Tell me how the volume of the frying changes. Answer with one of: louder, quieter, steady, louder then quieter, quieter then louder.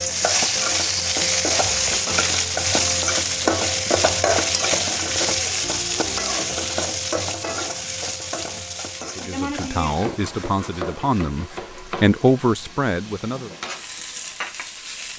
quieter.